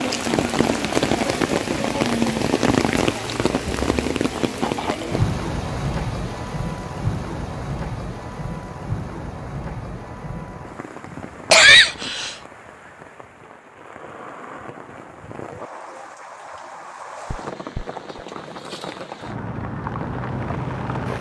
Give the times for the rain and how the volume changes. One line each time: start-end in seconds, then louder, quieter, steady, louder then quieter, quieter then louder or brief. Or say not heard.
0.0-21.1 quieter then louder.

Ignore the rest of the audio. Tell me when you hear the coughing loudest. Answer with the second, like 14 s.
12 s.